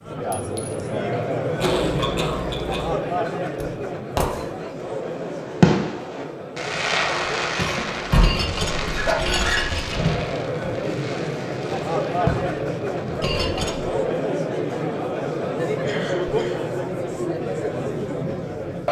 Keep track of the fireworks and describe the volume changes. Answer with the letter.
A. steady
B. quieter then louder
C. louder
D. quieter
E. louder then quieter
D.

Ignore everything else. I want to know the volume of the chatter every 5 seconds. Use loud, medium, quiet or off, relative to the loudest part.
loud, medium, loud, loud.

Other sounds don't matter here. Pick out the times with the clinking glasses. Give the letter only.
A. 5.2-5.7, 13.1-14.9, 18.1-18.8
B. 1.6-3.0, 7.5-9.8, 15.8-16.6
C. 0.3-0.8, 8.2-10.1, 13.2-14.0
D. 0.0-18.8
C.